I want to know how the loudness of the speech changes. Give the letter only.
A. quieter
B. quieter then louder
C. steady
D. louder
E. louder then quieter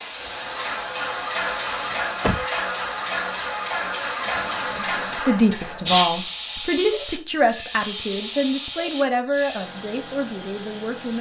A.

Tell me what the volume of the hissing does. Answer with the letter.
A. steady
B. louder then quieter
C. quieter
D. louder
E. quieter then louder
C.